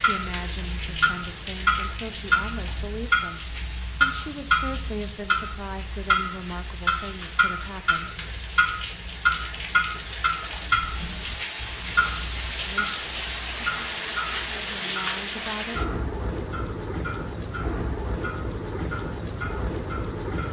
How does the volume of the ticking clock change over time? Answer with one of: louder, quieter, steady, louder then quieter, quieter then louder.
quieter.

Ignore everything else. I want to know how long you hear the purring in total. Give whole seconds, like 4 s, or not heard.
not heard.